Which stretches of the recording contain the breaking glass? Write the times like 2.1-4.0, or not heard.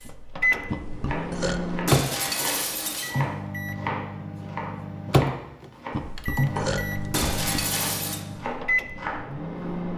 1.9-3.1, 7.1-8.2.